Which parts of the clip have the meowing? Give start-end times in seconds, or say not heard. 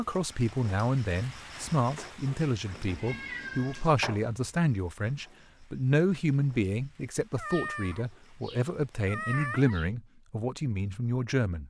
2.6-4.2, 7.3-9.9.